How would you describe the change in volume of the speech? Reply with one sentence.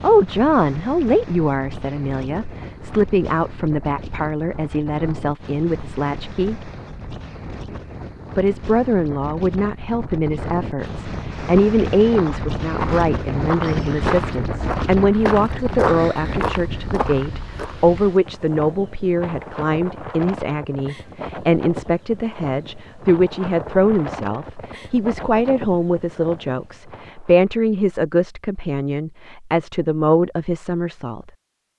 The volume of the speech stays about the same.